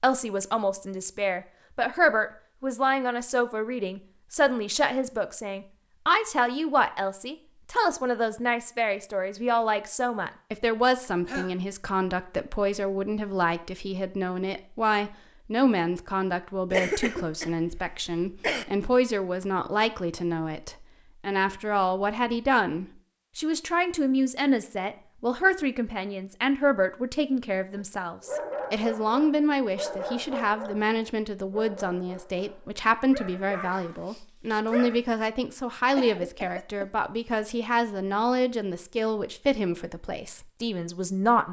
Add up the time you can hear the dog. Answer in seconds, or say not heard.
7 s.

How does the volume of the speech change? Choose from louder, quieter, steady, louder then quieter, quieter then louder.
steady.